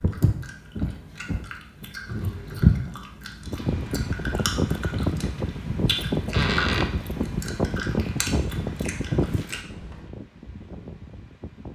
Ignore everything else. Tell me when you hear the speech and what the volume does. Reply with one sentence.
The speech can't be heard in this clip.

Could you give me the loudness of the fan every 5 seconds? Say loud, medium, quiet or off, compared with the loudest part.
loud, loud, quiet.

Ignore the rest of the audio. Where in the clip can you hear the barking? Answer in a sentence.
The barking can't be heard in this clip.